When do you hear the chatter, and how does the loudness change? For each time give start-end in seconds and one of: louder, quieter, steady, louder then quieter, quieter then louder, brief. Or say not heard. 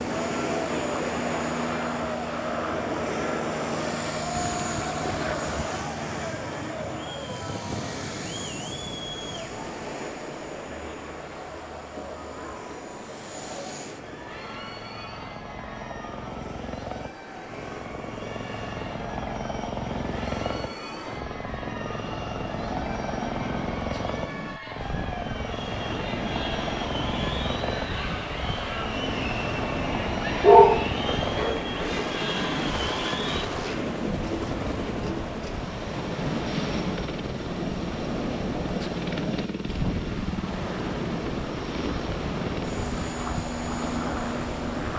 0.0-33.5 quieter then louder.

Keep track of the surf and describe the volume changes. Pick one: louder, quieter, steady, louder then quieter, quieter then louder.
quieter then louder.